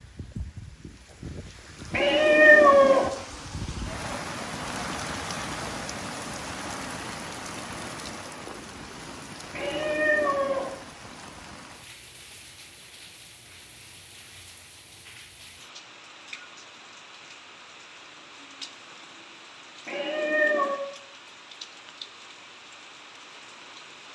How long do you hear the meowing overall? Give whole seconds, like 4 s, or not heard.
3 s.